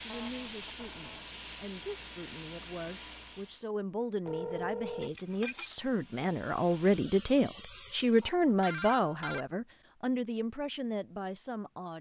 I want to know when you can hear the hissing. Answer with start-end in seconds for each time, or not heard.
0.0-3.6, 5.1-8.3.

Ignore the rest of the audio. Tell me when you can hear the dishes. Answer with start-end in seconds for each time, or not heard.
5.0-5.8.